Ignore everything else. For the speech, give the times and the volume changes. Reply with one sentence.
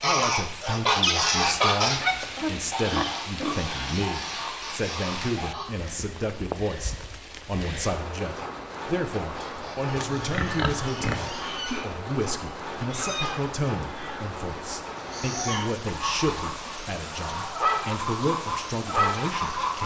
The speech can be heard from 0.0 to 19.8 s, at a steady volume.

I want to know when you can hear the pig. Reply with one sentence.
The pig can be heard from 1.9 to 3.8 s and from 9.9 to 11.3 s.